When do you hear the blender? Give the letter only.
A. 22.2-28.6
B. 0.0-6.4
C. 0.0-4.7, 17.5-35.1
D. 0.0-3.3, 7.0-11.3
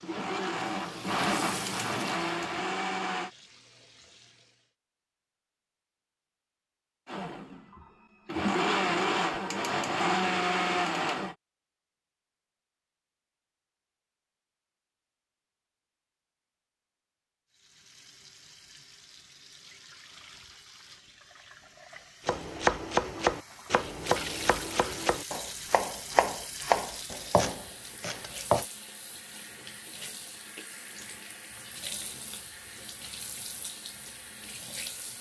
D.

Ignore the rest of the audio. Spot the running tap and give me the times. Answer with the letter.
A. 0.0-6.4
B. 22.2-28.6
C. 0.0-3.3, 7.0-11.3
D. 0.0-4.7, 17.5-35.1
D.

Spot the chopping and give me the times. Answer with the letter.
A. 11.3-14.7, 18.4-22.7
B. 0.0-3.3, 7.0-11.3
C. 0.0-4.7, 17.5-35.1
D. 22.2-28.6
D.